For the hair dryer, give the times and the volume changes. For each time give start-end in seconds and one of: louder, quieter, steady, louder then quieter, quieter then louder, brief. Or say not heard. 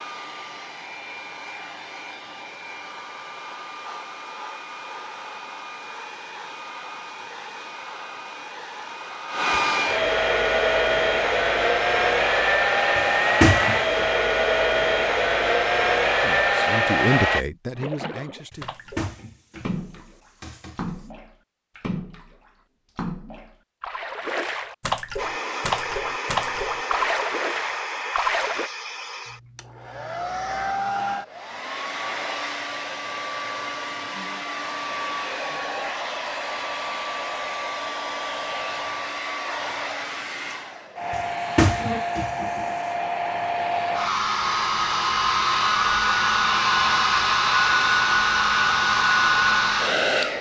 0.0-17.4 louder
25.1-50.3 louder.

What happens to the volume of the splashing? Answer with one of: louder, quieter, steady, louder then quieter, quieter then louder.
louder.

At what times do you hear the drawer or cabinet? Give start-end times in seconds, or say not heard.
12.9-14.1, 18.5-21.0, 41.1-42.8.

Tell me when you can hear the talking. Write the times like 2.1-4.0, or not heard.
16.2-18.8.